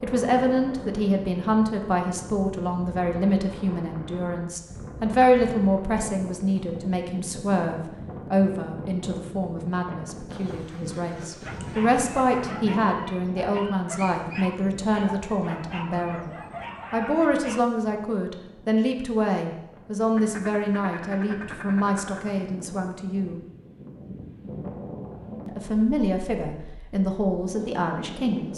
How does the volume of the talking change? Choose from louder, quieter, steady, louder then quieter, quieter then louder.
steady.